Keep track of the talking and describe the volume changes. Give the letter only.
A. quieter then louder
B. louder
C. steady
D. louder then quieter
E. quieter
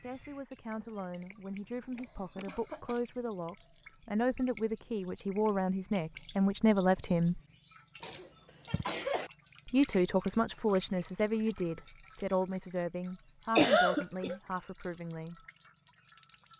D.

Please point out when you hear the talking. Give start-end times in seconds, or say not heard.
0.0-7.4, 9.7-15.4.